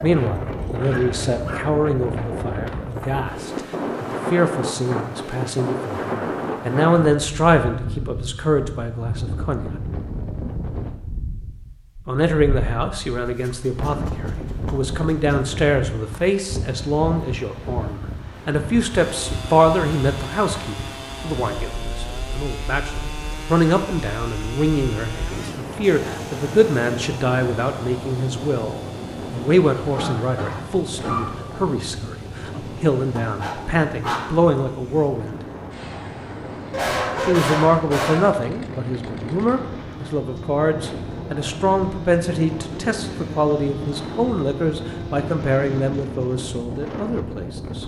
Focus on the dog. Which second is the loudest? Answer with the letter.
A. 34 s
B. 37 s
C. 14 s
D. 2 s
B.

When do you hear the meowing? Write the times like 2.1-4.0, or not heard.
not heard.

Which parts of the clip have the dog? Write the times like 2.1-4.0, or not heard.
0.8-1.6, 13.2-15.6, 33.2-34.3, 36.7-38.4.